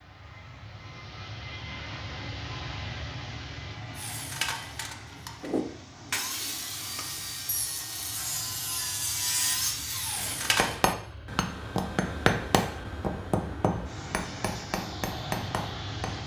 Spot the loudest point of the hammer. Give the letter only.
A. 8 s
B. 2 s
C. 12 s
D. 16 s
C.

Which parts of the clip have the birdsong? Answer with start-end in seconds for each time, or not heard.
not heard.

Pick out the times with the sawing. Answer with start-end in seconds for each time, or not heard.
4.0-10.8.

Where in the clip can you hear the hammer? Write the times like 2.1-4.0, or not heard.
10.2-16.2.